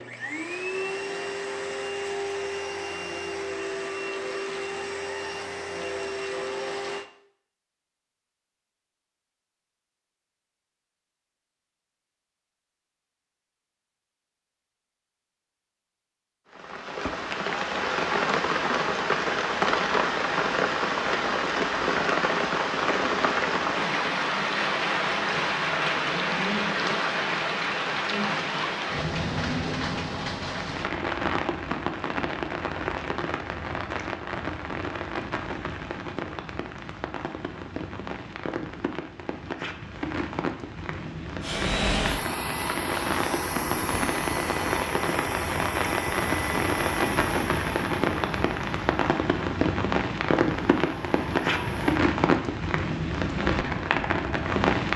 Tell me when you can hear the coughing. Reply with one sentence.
You can't hear the coughing here.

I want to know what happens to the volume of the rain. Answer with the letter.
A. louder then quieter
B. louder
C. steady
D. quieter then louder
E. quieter
D.